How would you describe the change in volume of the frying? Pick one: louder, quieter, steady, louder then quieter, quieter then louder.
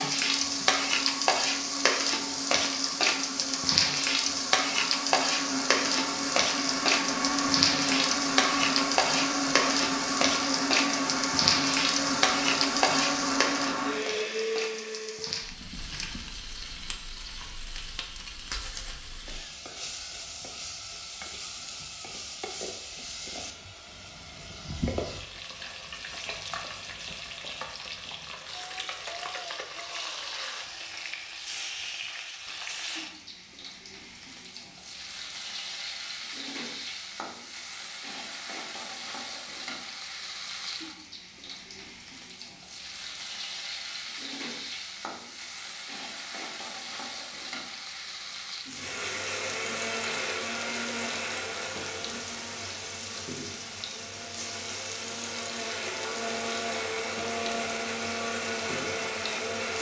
quieter.